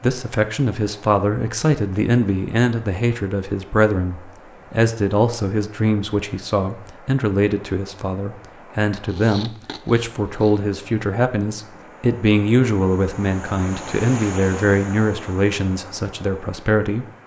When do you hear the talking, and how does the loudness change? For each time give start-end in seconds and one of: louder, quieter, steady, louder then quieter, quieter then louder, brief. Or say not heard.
0.0-17.1 steady.